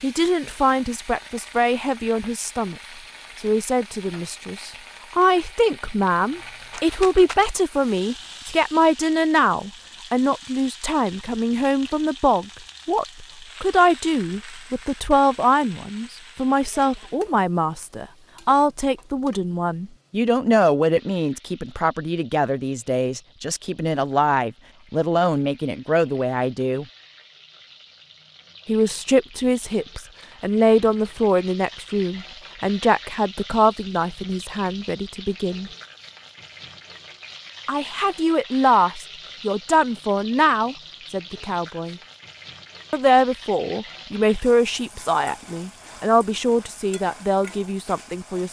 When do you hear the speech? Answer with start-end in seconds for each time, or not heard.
0.0-2.8, 3.4-26.9, 28.6-35.7, 37.6-42.0, 42.9-48.4.